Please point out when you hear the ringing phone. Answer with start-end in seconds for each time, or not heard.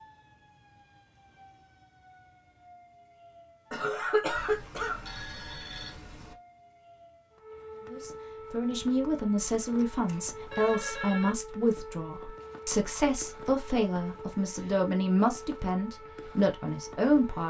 4.3-6.3, 9.9-11.3.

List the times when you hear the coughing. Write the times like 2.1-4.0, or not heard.
3.7-5.0.